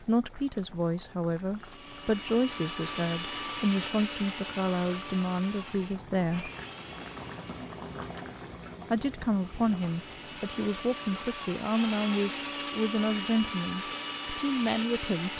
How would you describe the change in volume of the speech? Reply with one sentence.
The volume of the speech stays about the same.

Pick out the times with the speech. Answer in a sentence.
The speech can be heard from 0.0 to 6.5 s and from 8.9 to 15.3 s.